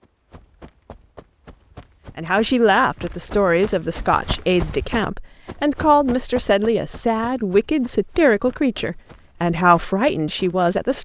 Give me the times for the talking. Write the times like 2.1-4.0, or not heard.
2.1-11.0.